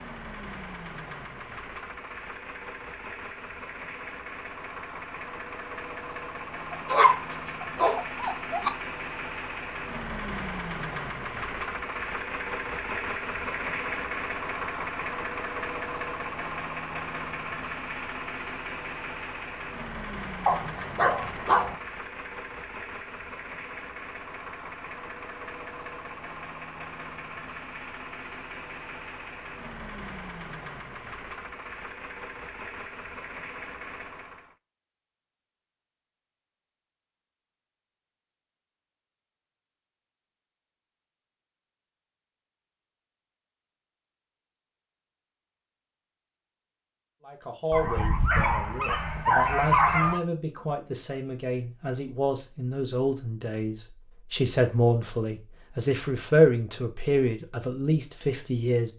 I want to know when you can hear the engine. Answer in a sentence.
The engine can be heard from 0.0 to 34.5 s.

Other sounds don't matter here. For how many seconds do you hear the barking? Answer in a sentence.
The barking can be heard for 6 seconds in total.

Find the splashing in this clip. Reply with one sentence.
You can't hear the splashing here.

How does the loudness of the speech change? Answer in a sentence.
The loudness of the speech goes up.